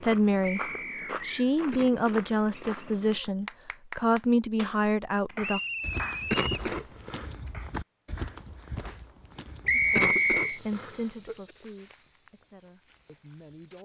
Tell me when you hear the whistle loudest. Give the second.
10 s.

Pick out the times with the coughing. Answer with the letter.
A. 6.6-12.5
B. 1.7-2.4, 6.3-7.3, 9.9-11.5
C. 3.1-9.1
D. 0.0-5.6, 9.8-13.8
B.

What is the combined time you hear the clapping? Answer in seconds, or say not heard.
6 s.